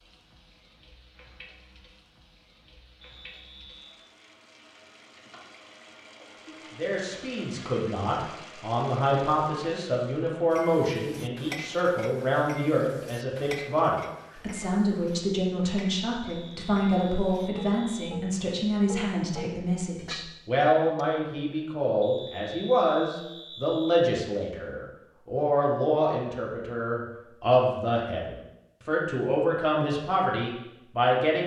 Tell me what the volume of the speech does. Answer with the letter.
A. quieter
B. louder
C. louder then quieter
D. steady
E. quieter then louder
D.